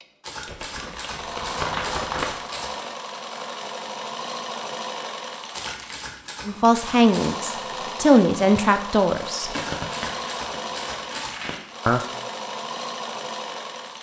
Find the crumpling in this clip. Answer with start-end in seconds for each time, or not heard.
0.5-2.3, 5.5-6.2, 9.5-11.8.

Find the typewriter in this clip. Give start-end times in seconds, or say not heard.
0.2-2.9, 5.5-7.4, 9.5-11.3.